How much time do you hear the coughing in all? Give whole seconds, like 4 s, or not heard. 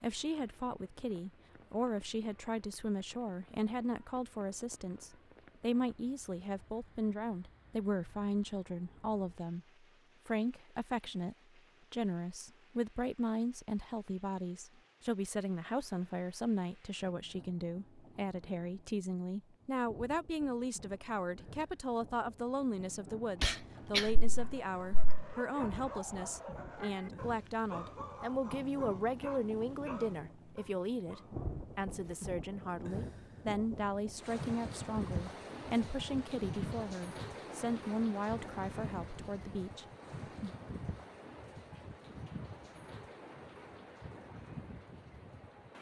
2 s.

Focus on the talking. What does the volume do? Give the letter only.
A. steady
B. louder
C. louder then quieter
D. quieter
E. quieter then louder
A.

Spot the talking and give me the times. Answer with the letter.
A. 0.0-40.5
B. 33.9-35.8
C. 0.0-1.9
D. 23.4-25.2
A.